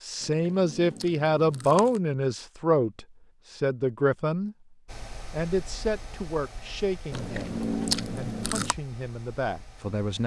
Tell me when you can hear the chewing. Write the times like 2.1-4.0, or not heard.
0.2-2.0, 7.1-8.8.